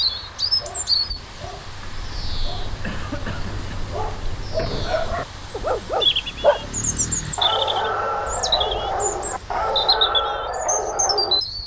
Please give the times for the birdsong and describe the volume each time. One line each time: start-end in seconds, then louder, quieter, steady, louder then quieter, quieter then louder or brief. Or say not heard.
0.0-11.6 quieter then louder.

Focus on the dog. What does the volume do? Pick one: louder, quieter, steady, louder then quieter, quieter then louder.
louder.